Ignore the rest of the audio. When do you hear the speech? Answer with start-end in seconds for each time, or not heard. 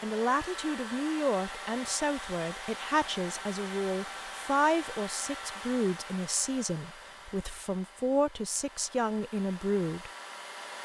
0.0-10.1.